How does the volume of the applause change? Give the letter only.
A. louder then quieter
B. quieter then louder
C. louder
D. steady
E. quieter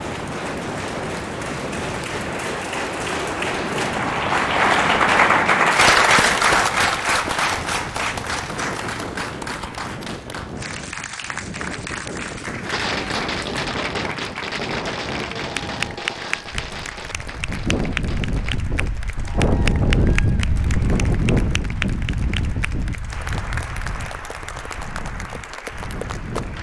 E.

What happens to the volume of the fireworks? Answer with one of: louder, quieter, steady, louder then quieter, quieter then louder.
quieter.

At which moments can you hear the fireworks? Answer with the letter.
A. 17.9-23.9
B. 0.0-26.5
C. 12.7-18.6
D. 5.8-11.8
C.